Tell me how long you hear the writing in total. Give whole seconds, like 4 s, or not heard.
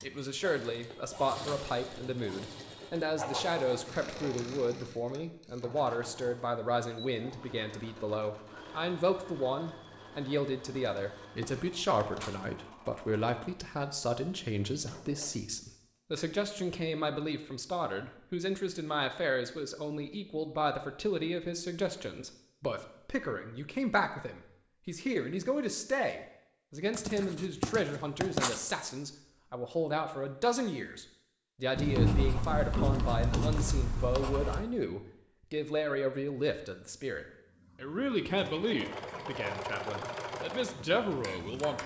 8 s.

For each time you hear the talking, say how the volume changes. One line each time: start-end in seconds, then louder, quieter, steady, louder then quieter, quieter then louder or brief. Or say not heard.
0.0-41.8 steady.